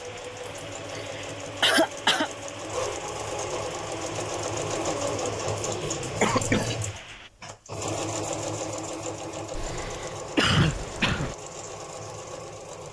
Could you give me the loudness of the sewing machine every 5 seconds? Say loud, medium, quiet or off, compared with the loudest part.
loud, loud, medium.